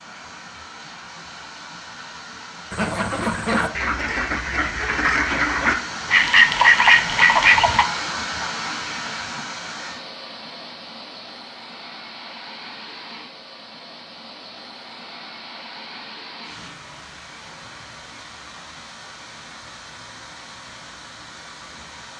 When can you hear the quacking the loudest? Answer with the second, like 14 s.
7 s.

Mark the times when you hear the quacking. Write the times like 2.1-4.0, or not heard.
2.7-7.8.